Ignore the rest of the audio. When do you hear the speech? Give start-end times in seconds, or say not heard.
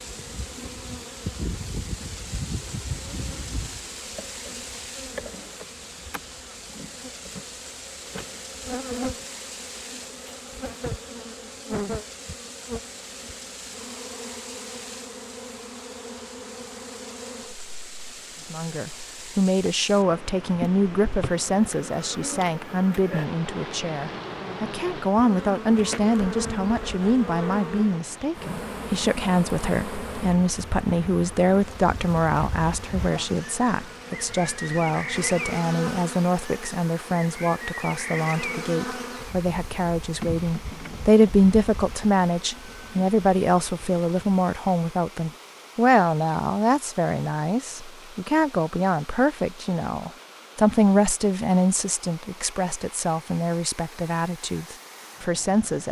18.5-55.8.